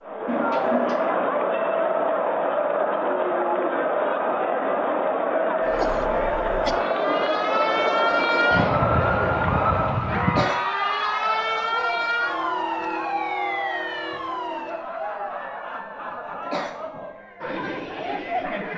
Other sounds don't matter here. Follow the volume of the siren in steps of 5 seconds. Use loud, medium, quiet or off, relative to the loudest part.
off, loud, loud, off.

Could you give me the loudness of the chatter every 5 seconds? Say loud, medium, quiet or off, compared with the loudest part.
loud, loud, medium, medium.